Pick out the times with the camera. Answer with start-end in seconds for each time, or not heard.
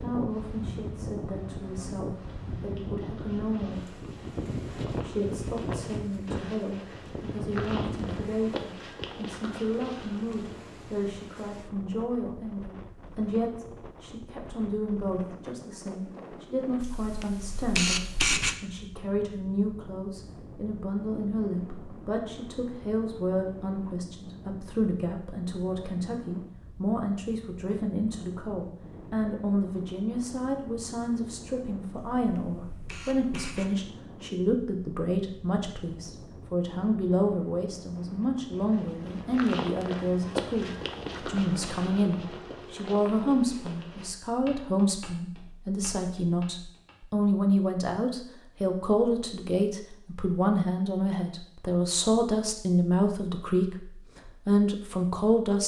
16.8-18.6, 31.9-33.7.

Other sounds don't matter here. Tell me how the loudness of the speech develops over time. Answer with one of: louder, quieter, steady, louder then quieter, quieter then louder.
louder.